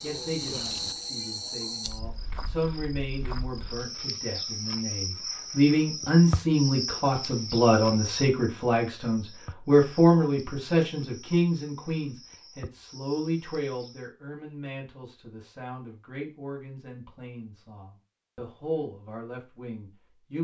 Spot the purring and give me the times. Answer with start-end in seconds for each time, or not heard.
not heard.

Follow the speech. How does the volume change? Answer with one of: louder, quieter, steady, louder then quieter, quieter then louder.
louder then quieter.